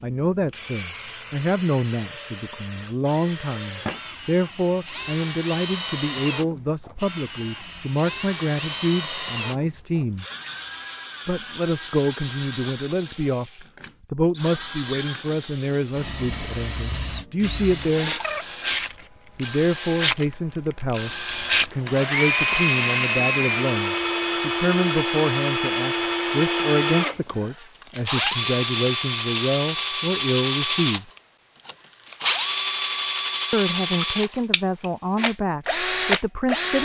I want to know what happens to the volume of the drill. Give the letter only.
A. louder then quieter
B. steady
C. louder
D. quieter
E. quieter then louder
C.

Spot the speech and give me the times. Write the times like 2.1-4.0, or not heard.
0.0-10.2, 11.2-18.1, 19.4-31.1, 33.5-36.8.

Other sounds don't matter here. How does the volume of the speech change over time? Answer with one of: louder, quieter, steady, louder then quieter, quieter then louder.
steady.